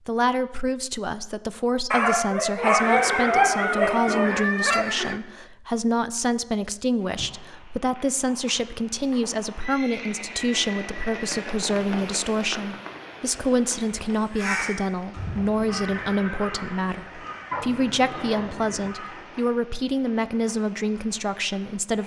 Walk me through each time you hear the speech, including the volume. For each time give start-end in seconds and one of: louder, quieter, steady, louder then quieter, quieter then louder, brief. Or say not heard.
0.1-22.0 steady.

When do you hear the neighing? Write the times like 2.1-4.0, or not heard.
2.8-5.2, 9.6-11.6, 15.9-17.4.